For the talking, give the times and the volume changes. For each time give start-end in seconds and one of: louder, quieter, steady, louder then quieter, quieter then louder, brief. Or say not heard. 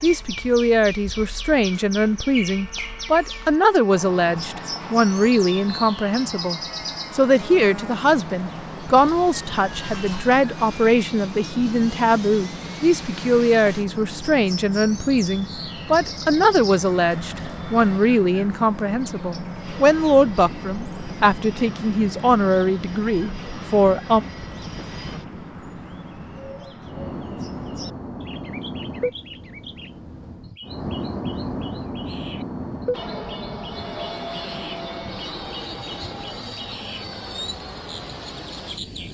0.0-24.2 steady.